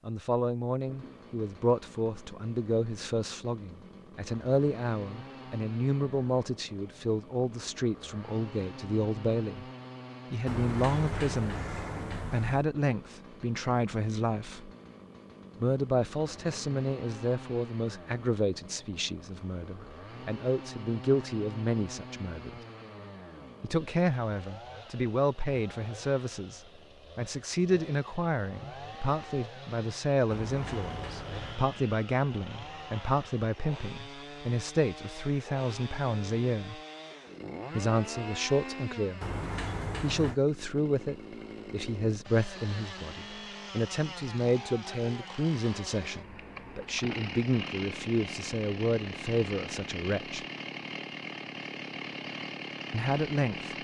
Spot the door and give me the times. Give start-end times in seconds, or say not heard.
10.4-12.7, 30.3-31.6, 39.2-40.4.